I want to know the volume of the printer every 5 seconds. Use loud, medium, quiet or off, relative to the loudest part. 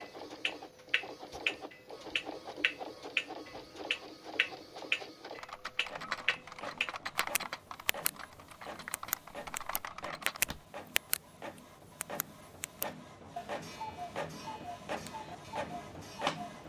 medium, medium, medium, loud.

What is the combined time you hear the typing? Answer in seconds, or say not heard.
5 s.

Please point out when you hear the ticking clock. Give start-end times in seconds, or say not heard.
0.0-8.1, 8.9-11.2, 12.0-16.6.